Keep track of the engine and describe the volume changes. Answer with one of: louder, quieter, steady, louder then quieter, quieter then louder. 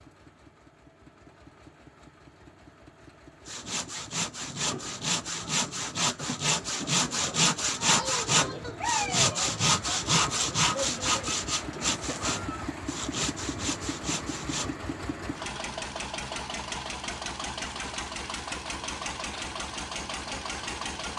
louder.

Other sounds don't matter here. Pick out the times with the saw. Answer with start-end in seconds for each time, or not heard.
3.5-14.8.